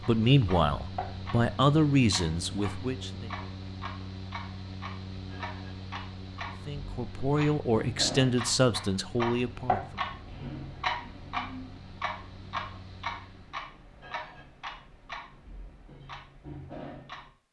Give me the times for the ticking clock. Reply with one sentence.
The ticking clock can be heard from 0.0 to 17.3 s.